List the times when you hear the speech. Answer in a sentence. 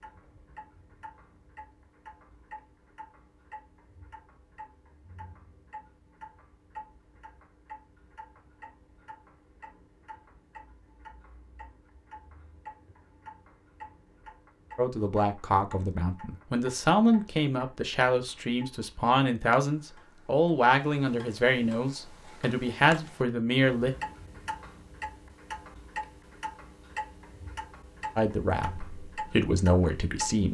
You can hear the speech from 14.8 to 23.9 s and from 28.1 to 30.4 s.